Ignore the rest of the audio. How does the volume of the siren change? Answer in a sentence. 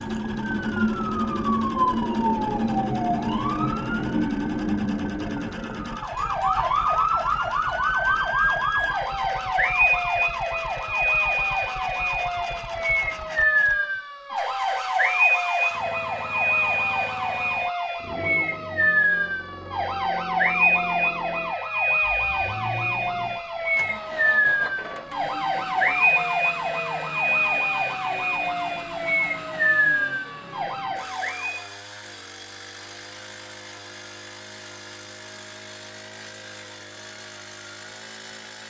The volume of the siren stays about the same.